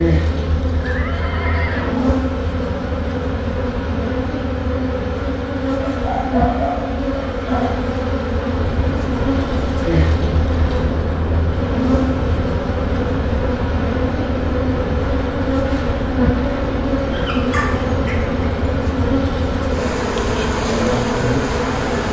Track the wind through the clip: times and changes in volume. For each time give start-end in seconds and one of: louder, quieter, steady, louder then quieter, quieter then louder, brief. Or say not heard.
8.5-22.0 steady.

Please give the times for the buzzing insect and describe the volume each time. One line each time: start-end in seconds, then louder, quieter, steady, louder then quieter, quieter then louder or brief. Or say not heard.
0.0-22.0 steady.